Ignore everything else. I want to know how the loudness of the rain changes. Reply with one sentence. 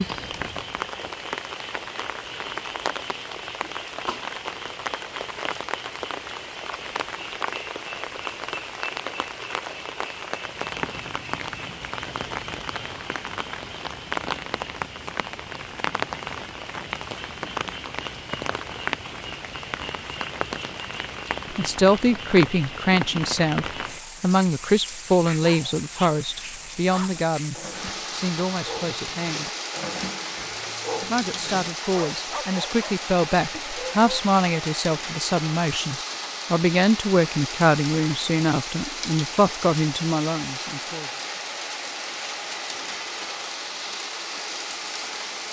The volume of the rain stays about the same.